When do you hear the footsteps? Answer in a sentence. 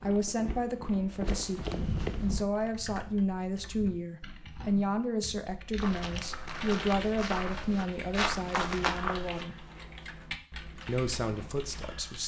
You can hear the footsteps from 0.0 to 2.5 s and from 5.8 to 9.4 s.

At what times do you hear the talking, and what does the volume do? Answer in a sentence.
You can hear the talking from 0.0 to 9.7 s, at a steady volume; and briefly from 10.8 to 12.2 s.